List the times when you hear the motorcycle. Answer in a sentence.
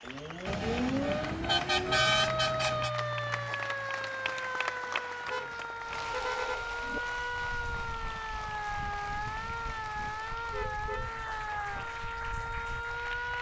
You can't hear the motorcycle here.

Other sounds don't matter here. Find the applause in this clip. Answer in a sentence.
The applause can be heard from 0.0 to 13.3 s.